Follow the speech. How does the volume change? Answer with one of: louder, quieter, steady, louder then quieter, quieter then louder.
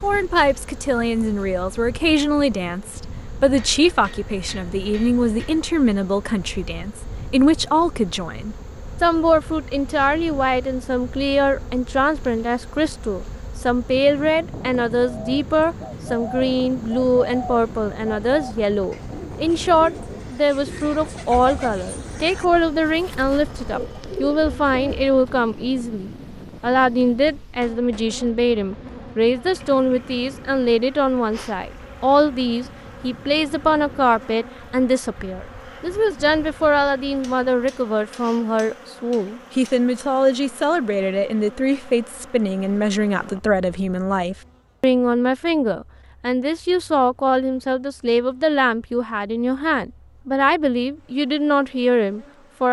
steady.